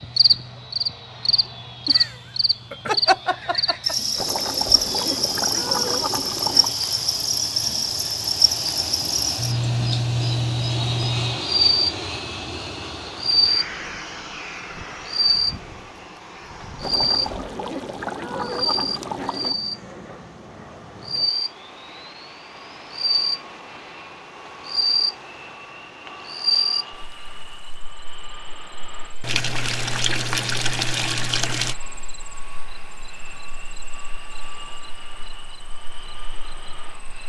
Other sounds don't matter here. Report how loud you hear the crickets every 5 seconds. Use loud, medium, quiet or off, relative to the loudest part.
loud, loud, loud, loud, medium, medium, quiet, quiet.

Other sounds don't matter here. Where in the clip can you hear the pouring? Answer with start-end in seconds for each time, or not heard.
4.2-6.8, 16.8-19.6, 29.2-31.8.